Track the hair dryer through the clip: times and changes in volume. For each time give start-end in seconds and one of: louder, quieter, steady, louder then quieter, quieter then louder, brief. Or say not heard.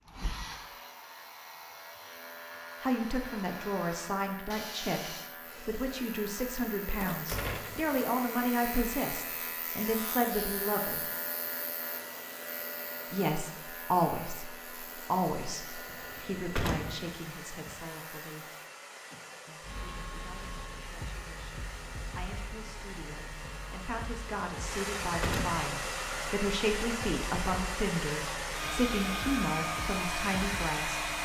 0.1-31.2 louder.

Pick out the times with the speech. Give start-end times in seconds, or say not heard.
2.8-11.1, 13.1-18.5, 19.4-31.1.